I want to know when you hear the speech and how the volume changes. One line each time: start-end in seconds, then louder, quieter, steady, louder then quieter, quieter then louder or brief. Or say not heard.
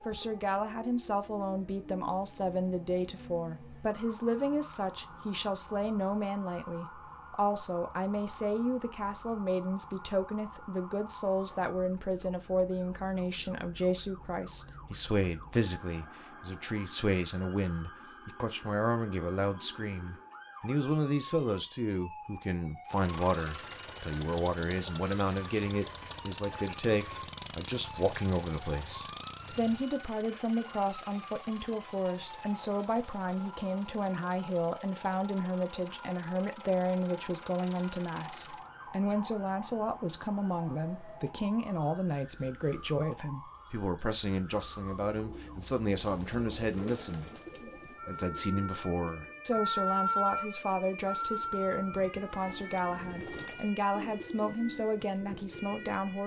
0.0-56.2 steady.